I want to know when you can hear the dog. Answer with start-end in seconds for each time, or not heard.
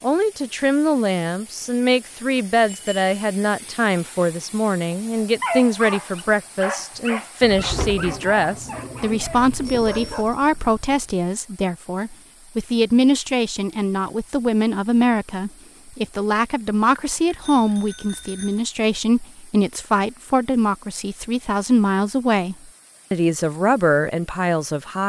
5.4-10.2.